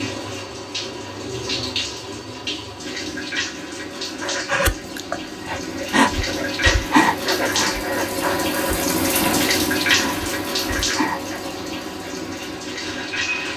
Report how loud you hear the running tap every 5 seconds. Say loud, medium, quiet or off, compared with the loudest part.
medium, loud, loud.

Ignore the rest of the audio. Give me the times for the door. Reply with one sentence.
The door can be heard from 9.2 to 9.6 s.